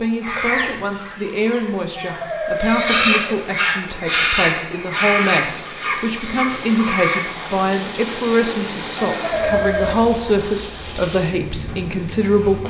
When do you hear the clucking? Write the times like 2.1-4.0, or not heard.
0.2-7.5.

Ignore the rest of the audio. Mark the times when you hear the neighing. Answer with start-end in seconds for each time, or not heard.
1.9-3.5, 8.9-10.0.